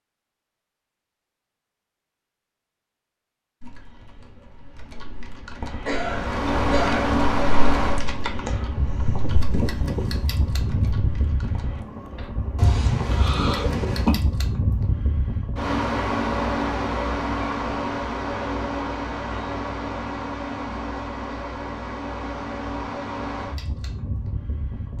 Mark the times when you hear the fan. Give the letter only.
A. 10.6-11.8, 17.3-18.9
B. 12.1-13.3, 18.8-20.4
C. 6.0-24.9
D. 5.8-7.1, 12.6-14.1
C.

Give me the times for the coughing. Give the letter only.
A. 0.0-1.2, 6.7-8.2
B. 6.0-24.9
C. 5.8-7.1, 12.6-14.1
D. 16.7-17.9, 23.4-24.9
C.